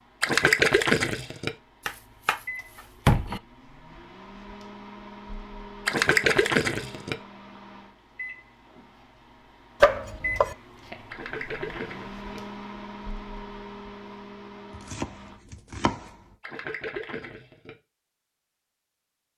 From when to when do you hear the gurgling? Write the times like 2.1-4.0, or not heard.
0.2-1.5, 5.8-7.2, 11.1-12.4, 16.4-17.8.